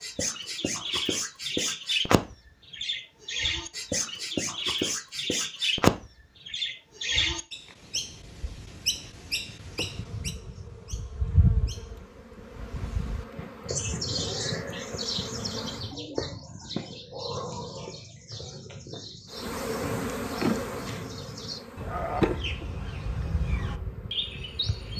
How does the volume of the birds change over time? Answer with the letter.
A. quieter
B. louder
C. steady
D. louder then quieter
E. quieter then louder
A.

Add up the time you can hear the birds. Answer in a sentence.
You can hear the birds for 25 seconds altogether.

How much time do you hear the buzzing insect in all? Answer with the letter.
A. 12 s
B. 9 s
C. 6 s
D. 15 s
A.